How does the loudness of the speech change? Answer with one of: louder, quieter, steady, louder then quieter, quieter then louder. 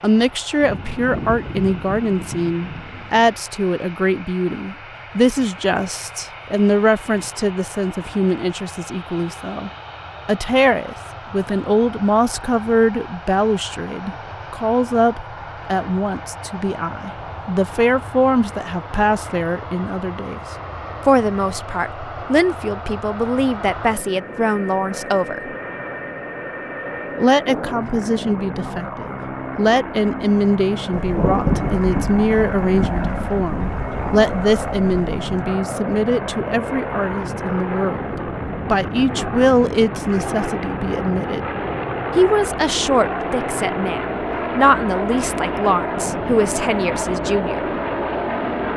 steady.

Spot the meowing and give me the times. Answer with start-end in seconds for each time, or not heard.
not heard.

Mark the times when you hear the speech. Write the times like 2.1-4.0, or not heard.
0.0-20.4, 21.1-25.5, 27.1-41.5, 42.1-47.7.